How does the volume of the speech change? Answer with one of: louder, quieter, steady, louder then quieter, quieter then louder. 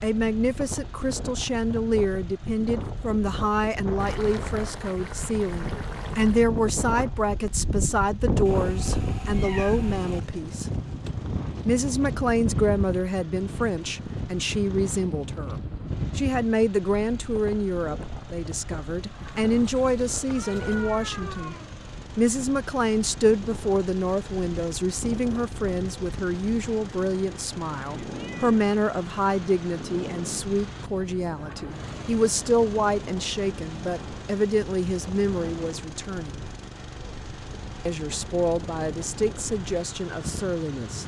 steady.